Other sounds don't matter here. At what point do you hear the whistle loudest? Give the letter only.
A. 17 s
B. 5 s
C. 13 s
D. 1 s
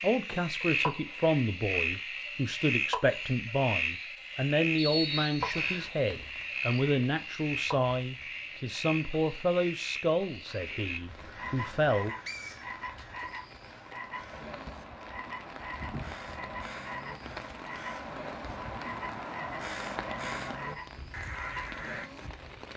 B.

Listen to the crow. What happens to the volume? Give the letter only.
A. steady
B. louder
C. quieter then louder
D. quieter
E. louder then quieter
B.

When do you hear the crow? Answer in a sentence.
The crow can be heard from 10.5 to 22.1 s.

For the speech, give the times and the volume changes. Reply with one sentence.
The speech can be heard from 0.0 to 12.2 s, at a steady volume.